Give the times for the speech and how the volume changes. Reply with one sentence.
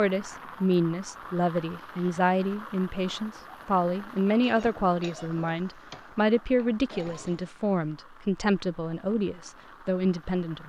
The speech can be heard from 0.0 to 10.6 s, at a steady volume.